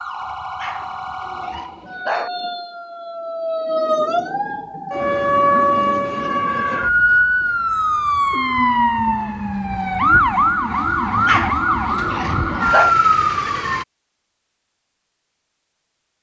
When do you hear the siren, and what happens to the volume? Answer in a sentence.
You can hear the siren from 0.0 to 13.8 s, getting louder.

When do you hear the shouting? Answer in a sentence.
You can't hear the shouting here.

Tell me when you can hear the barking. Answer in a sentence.
The barking can be heard from 0.6 to 2.3 s and from 11.2 to 12.9 s.